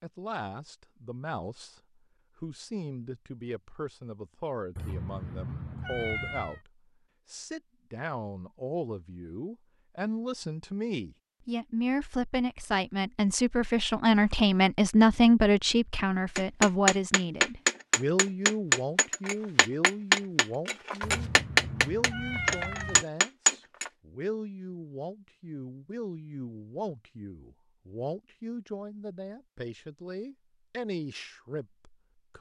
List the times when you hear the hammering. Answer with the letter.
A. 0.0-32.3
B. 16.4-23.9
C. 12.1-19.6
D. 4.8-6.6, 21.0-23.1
B.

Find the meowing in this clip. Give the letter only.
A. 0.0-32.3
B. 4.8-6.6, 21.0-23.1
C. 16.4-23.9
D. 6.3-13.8
B.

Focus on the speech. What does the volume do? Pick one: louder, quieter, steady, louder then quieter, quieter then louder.
louder then quieter.